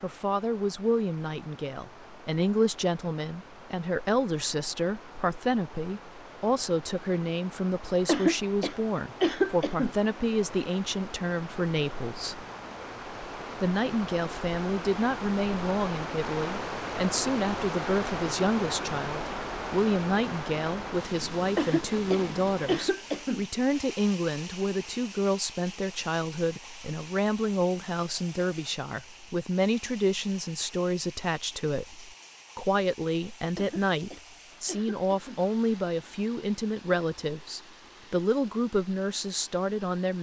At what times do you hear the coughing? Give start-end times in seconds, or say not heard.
8.1-9.9, 21.6-23.4, 33.5-35.5.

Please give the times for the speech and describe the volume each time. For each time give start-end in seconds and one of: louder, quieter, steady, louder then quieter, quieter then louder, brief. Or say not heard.
0.0-12.4 steady
13.6-40.1 steady.